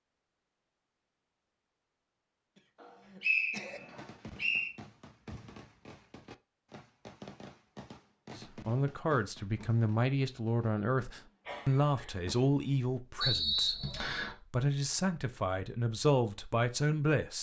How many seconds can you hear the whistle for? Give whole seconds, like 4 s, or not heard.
3 s.